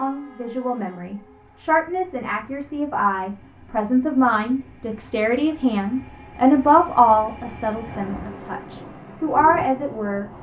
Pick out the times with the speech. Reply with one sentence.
You can hear the speech from 0.0 to 10.3 s.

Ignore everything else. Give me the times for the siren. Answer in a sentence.
The siren can't be heard in this clip.